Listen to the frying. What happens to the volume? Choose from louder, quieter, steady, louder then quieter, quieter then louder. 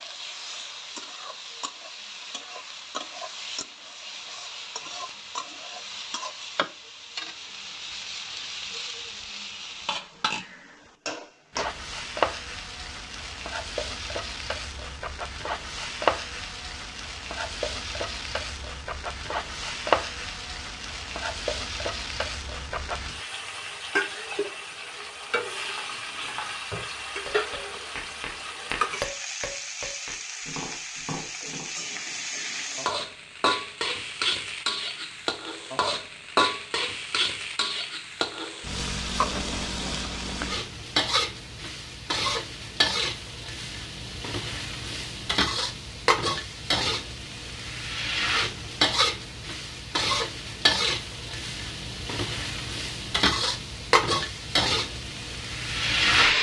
louder.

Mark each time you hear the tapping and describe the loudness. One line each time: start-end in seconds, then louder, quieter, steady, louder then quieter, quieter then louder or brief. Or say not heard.
25.6-31.7 louder then quieter.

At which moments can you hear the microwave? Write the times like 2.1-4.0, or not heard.
not heard.